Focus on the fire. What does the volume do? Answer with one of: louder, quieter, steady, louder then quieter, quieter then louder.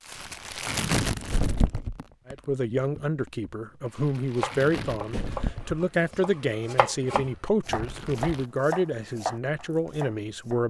quieter then louder.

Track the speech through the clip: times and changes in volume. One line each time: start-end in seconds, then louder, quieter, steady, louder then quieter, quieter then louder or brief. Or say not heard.
2.2-10.6 steady.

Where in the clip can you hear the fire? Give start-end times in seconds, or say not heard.
0.0-8.5.